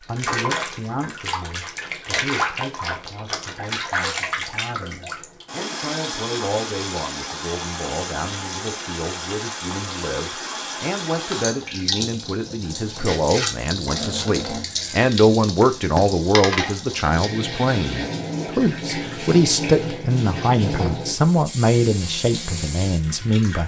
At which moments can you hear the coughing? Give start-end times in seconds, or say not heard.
not heard.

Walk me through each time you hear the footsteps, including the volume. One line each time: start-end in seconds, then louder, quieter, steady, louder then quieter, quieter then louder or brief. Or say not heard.
not heard.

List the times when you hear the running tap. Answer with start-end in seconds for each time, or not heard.
0.0-23.6.